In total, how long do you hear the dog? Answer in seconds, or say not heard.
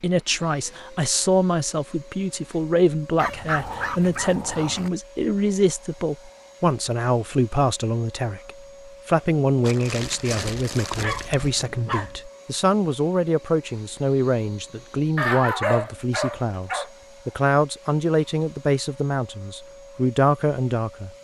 6 s.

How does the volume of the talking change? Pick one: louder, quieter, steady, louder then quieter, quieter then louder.
steady.